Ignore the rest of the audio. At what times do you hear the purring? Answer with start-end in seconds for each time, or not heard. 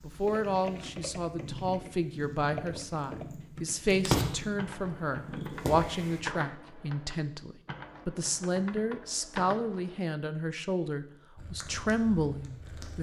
0.0-6.2, 11.3-12.9.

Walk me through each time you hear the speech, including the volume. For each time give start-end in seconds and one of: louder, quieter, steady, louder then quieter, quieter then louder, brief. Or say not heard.
0.0-12.9 steady.